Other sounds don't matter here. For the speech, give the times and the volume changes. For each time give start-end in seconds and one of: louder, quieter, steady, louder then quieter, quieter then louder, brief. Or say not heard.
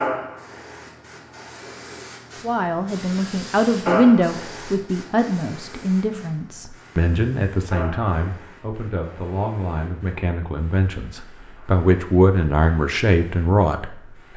2.4-14.3 quieter then louder.